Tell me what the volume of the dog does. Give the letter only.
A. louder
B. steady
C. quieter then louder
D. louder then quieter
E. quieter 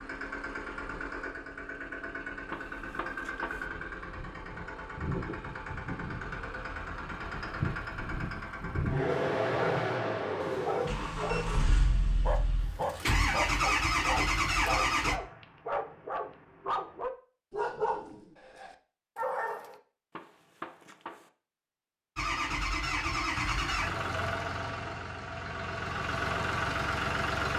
B.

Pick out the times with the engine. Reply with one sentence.
The engine can be heard from 0.0 to 15.2 s and from 22.1 to 27.5 s.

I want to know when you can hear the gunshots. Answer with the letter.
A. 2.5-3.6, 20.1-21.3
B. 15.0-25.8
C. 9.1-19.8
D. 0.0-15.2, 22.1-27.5
A.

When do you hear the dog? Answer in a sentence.
You can hear the dog from 9.1 to 19.8 s.